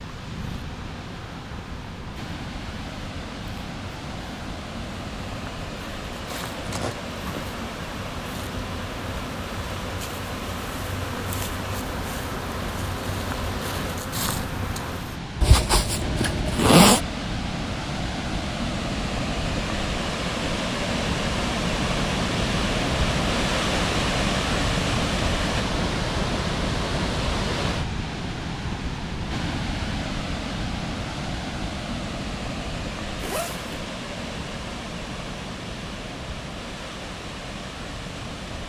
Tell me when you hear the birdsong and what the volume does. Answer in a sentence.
You can't hear the birdsong here.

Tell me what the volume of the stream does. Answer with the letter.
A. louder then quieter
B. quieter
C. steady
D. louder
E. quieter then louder
A.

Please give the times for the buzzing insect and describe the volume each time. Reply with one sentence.
The buzzing insect can be heard from 0.0 to 15.2 s, getting louder.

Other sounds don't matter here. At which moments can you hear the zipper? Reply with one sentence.
You can hear the zipper from 6.3 to 7.0 s, from 15.4 to 17.0 s and from 33.2 to 33.7 s.